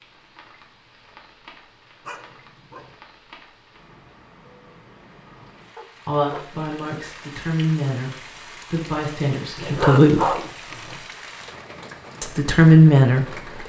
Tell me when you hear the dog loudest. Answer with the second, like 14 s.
10 s.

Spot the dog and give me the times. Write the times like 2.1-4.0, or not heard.
2.0-3.0, 5.8-6.5, 9.6-11.1.